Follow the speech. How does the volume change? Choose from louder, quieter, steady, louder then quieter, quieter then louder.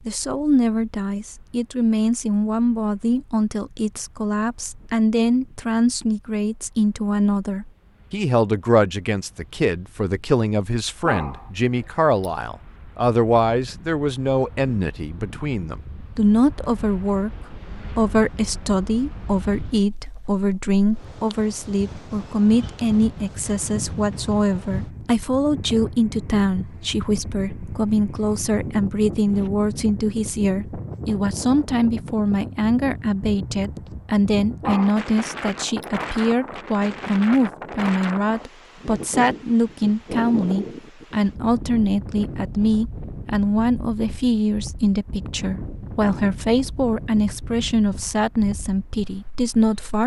steady.